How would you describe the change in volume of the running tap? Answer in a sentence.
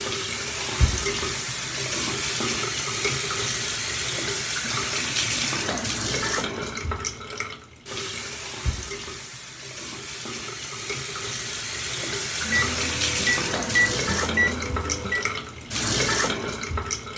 The volume of the running tap goes down, then up.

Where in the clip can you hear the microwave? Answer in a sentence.
You can hear the microwave from 12.3 to 15.2 s.